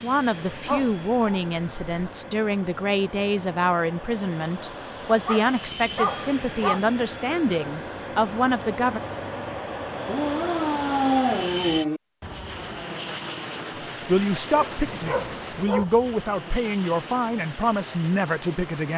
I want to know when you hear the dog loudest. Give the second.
11 s.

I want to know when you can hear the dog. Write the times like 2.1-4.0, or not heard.
0.5-2.1, 5.2-6.8, 10.1-12.0, 14.5-15.8.